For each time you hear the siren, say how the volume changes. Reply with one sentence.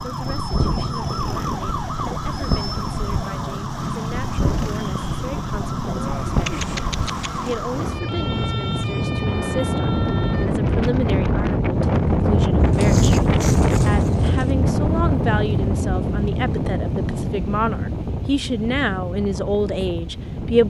The siren can be heard from 0.0 to 10.5 s, getting quieter.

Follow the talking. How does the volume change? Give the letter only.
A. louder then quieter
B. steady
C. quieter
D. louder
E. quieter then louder
D.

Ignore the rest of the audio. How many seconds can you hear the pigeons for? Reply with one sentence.
The pigeons can be heard for 3 seconds in total.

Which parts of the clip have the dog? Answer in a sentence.
You can hear the dog from 12.7 to 13.9 s.